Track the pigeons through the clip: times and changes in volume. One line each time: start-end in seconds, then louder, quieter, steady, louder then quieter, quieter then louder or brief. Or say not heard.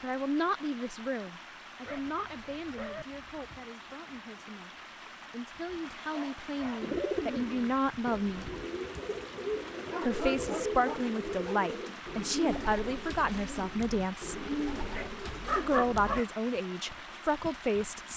6.8-16.2 steady.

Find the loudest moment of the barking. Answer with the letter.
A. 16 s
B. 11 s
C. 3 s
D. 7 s
A.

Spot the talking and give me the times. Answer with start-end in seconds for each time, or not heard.
0.0-4.7, 5.3-8.5, 10.0-14.5, 15.5-18.1.